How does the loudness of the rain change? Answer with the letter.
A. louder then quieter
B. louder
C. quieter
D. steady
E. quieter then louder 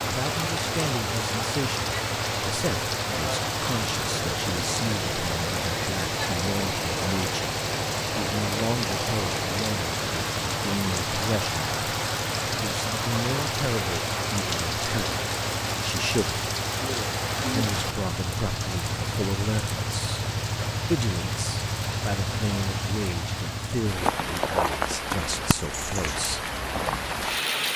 D.